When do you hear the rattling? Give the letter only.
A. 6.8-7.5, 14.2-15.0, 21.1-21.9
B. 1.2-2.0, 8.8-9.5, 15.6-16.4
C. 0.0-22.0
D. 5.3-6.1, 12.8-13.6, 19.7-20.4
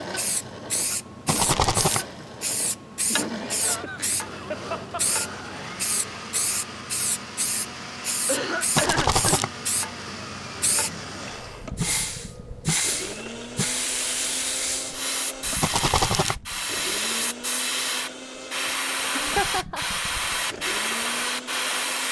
B.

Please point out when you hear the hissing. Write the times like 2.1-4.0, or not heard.
0.0-22.0.